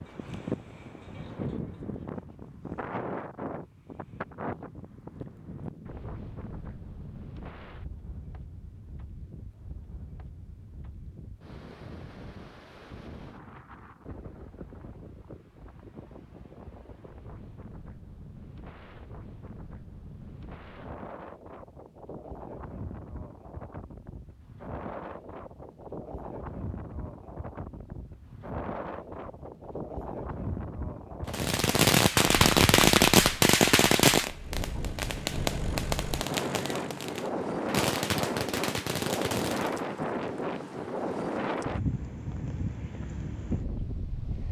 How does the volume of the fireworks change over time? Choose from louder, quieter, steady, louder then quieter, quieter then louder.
quieter.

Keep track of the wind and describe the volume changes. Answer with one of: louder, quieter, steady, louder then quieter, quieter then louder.
quieter then louder.